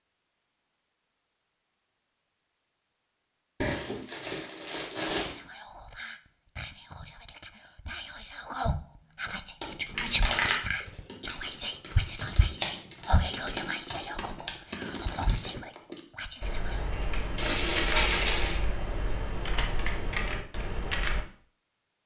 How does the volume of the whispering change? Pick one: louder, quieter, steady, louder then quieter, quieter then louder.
louder then quieter.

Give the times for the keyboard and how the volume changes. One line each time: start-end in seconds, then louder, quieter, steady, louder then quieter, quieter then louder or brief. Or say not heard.
9.6-21.2 louder.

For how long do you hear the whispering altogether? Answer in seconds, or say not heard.
12 s.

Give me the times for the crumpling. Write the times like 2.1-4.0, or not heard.
3.6-5.3, 9.9-10.6, 17.4-18.6.